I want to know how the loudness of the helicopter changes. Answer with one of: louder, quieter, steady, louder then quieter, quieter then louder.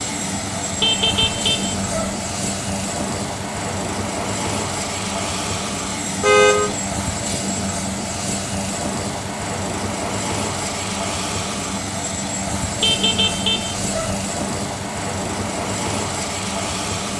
steady.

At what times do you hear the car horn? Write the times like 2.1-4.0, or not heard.
0.8-2.1, 6.2-6.8, 12.8-14.2.